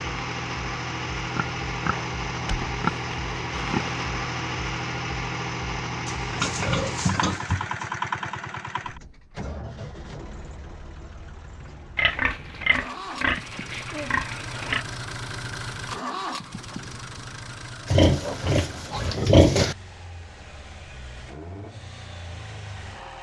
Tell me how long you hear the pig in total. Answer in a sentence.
You can hear the pig for 9 seconds altogether.